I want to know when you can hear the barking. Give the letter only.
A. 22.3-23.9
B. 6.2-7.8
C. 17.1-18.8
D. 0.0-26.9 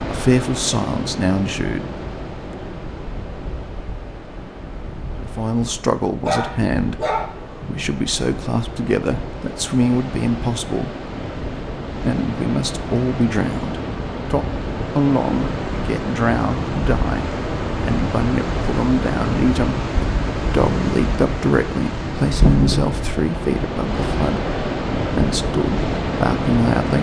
B.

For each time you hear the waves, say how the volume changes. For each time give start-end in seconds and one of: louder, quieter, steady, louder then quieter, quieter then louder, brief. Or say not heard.
0.0-26.9 louder.